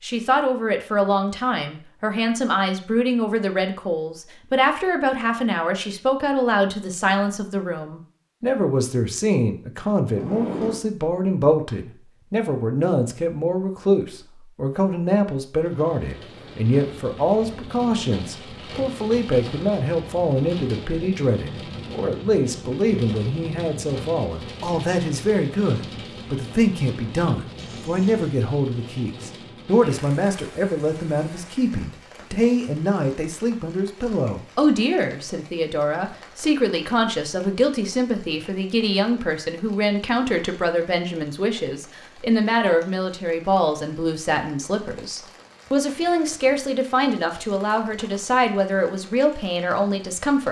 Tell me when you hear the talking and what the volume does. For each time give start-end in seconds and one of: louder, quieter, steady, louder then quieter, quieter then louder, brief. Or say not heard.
0.0-50.4 steady.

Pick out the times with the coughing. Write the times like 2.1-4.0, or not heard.
not heard.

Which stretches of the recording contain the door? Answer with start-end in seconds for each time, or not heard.
10.2-10.8, 27.6-28.2.